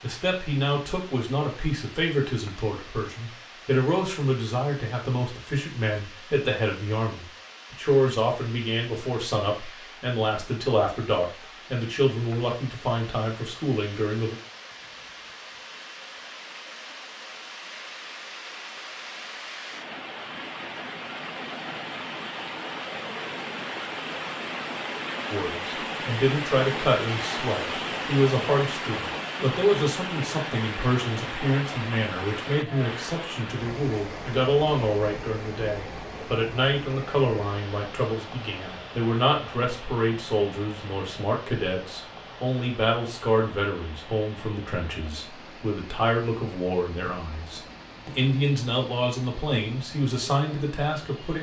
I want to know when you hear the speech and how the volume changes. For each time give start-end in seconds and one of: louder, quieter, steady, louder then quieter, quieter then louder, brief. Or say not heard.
0.0-14.3 steady
25.3-51.3 steady.